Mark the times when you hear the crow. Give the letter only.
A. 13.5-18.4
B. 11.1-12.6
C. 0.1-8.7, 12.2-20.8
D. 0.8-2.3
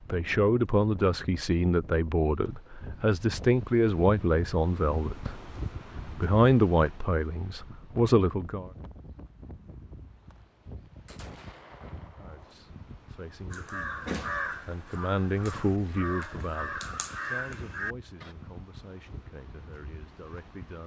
A.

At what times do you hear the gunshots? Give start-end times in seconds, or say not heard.
11.1-12.6.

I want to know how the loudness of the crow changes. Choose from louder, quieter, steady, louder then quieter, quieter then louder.
quieter then louder.